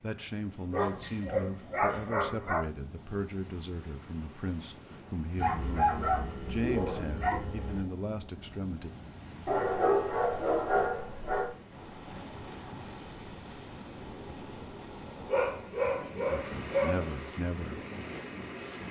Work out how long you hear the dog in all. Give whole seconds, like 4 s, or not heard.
8 s.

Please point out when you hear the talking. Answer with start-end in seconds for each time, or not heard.
0.0-8.9, 16.2-17.8.